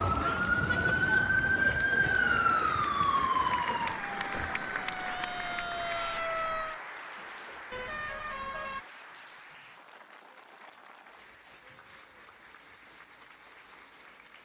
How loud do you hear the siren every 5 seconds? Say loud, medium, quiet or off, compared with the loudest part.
loud, medium, off.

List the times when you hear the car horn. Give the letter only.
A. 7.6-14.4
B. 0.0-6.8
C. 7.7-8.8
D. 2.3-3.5
C.